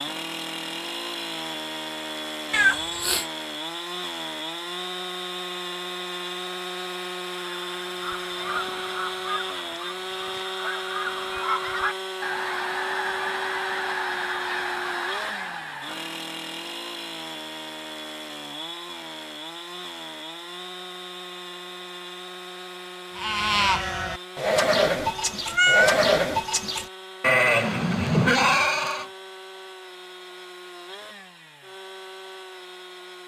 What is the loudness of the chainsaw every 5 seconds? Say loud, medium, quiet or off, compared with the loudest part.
loud, loud, loud, loud, medium, medium, medium.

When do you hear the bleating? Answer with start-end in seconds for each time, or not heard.
23.1-29.1.